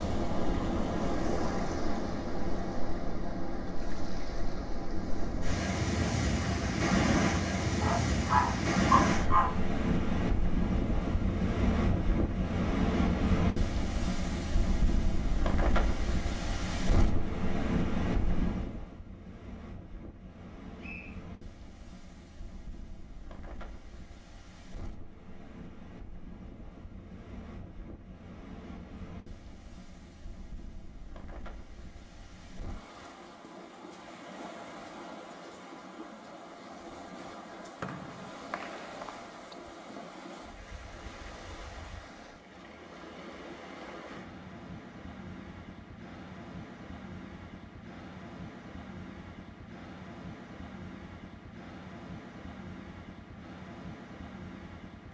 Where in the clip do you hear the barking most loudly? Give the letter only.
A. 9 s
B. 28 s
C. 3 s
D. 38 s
A.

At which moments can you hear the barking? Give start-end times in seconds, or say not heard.
7.8-9.6.